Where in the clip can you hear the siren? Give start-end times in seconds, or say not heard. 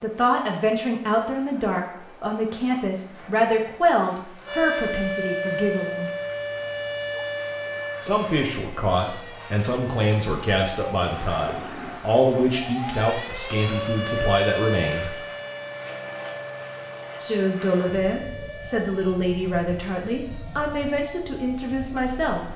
4.5-22.5.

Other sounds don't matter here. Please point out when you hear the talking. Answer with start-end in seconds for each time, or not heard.
0.0-6.1, 8.0-15.2, 17.2-22.5.